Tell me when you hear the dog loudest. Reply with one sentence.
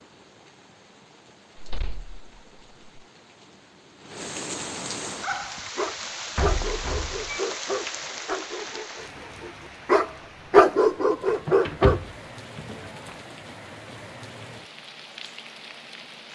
The volume of the dog peaks at 11 seconds.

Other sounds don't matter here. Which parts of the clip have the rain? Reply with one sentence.
The rain can be heard from 0.0 to 16.2 s.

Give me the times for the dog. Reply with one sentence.
The dog can be heard from 5.1 to 12.0 s.